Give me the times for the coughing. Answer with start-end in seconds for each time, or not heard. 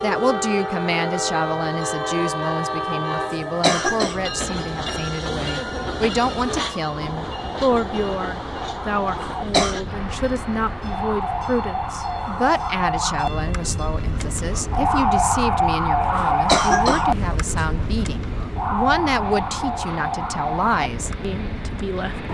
3.1-4.2, 9.1-9.8, 16.1-17.6.